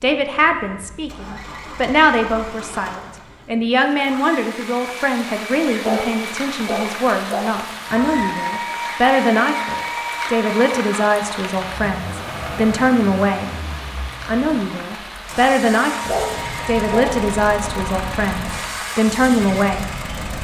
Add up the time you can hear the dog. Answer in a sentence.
You can hear the dog for 3 seconds altogether.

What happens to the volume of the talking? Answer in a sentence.
The loudness of the talking stays about the same.